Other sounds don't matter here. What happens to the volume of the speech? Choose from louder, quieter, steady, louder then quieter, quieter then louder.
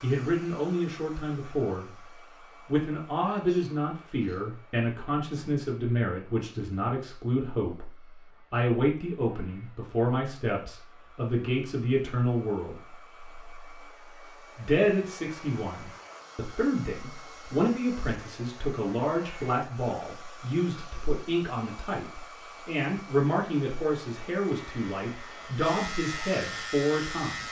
steady.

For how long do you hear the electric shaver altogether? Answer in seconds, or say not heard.
3 s.